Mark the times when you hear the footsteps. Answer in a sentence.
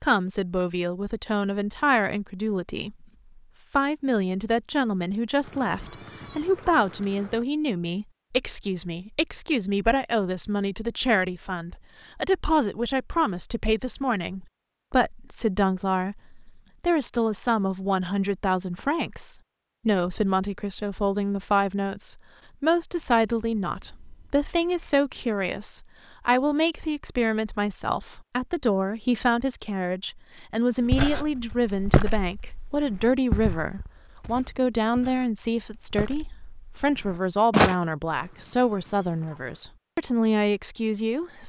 The footsteps can be heard from 30.9 to 37.8 s.